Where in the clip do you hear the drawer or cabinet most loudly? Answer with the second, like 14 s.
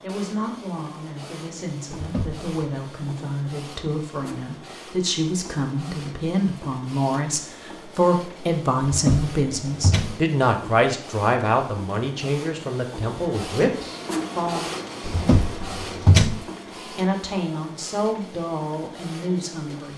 16 s.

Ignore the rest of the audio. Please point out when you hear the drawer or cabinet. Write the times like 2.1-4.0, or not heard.
1.9-2.5, 8.8-10.2, 15.0-16.4.